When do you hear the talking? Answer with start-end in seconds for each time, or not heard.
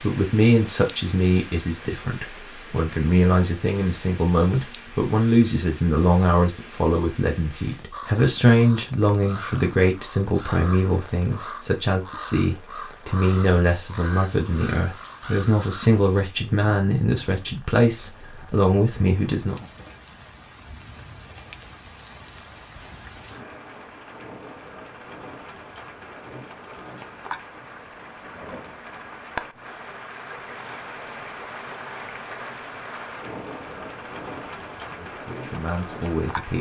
0.0-19.7, 35.1-36.5.